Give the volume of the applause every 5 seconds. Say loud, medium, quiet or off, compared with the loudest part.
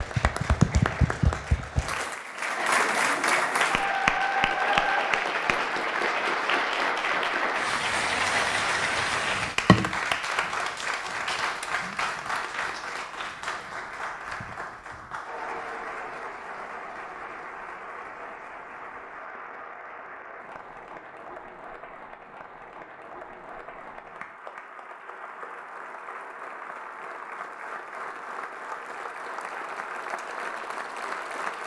loud, loud, medium, quiet, quiet, quiet, medium.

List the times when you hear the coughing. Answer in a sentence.
You can hear the coughing from 2.5 to 3.5 s.